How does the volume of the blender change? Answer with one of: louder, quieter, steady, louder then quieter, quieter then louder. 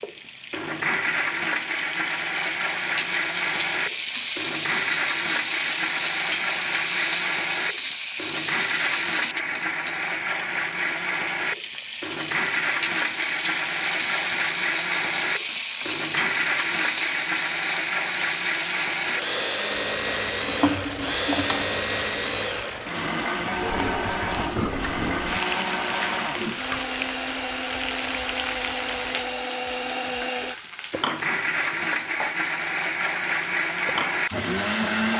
steady.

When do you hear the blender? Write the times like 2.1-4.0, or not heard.
0.0-35.1.